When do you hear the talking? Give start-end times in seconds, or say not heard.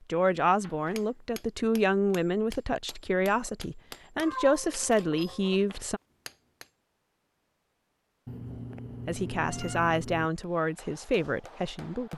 0.1-6.0, 9.1-12.1.